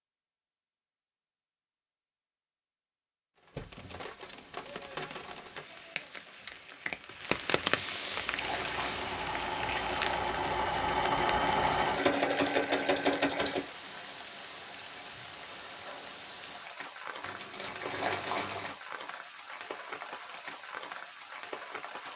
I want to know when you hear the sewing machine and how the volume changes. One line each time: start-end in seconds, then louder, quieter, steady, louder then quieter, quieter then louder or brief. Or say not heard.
8.3-13.7 louder.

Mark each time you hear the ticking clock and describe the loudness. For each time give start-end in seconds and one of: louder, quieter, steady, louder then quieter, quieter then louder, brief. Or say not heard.
not heard.